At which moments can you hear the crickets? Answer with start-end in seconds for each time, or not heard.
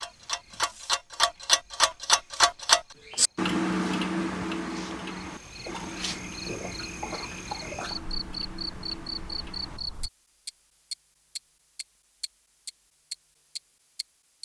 0.0-10.1.